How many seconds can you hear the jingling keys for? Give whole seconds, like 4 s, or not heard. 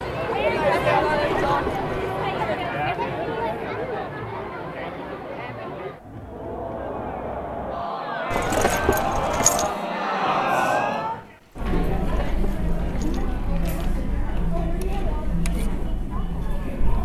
4 s.